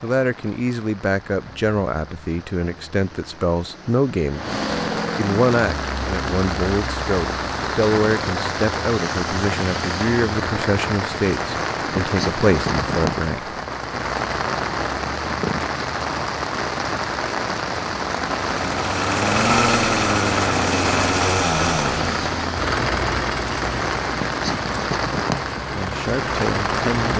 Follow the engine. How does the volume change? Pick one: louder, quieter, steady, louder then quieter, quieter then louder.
quieter.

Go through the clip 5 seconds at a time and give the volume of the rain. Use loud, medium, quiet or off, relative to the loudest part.
medium, loud, loud, loud, loud, loud.